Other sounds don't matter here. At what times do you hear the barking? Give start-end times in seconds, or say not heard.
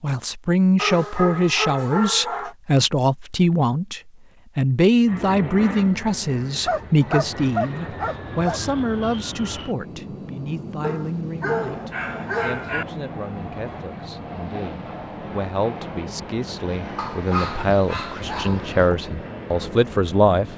0.8-2.5, 6.7-8.6, 10.8-12.8, 16.9-18.9.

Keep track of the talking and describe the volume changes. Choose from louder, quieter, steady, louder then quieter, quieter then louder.
quieter then louder.